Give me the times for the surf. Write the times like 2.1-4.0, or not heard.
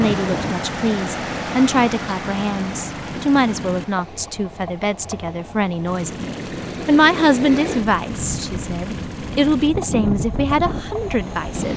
0.0-11.7.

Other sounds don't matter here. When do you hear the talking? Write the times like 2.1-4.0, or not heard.
0.0-11.7.